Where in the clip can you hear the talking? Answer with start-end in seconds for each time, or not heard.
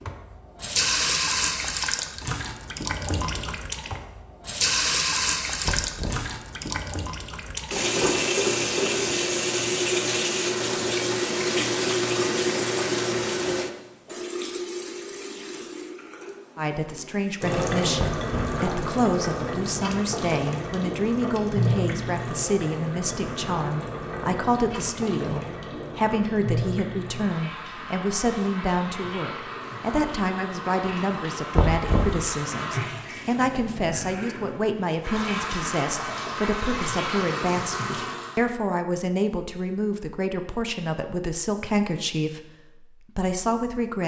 16.6-44.0.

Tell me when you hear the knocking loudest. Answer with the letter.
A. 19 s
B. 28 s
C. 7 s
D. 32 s
D.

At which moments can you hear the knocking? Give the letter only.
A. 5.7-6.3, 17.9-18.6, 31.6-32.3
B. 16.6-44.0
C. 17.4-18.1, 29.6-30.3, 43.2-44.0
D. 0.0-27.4
A.